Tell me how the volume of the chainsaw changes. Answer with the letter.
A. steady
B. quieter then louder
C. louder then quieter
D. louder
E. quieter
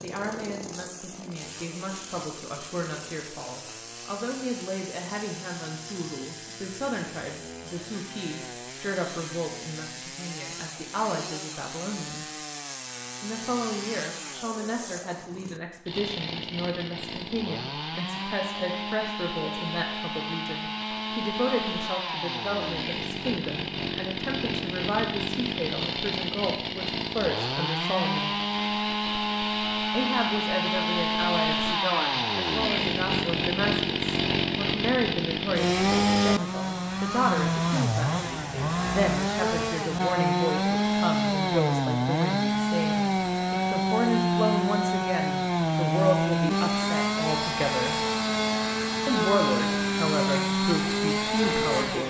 D.